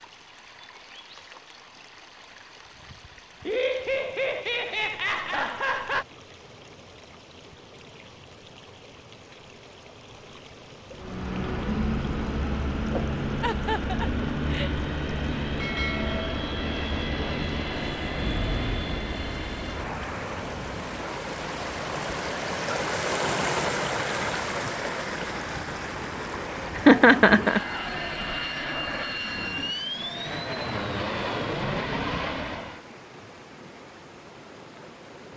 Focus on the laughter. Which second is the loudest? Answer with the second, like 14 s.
27 s.